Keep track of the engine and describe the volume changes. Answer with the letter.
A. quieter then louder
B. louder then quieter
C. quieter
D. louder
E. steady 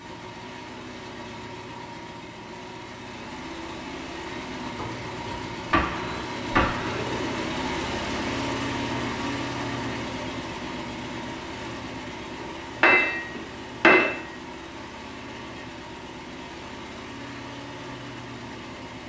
B.